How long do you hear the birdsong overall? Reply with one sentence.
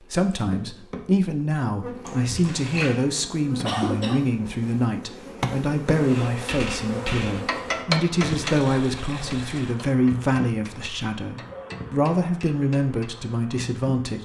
You can't hear the birdsong here.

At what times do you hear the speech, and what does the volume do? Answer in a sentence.
The speech can be heard from 0.1 to 14.2 s, at a steady volume.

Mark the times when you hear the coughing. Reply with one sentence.
The coughing can be heard from 3.6 to 4.2 s.